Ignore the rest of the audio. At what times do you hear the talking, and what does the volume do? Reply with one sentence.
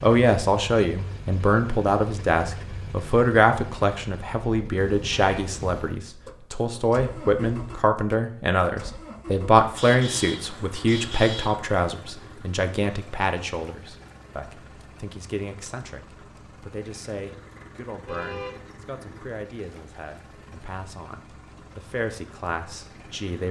You can hear the talking from 0.0 to 23.4 s, getting quieter.